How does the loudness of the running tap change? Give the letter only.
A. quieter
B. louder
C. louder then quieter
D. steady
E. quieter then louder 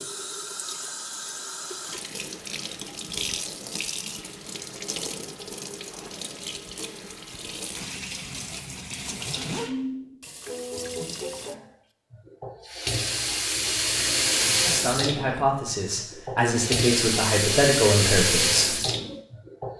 B.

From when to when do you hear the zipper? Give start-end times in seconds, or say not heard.
9.0-9.8.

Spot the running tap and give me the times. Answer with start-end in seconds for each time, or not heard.
0.0-19.7.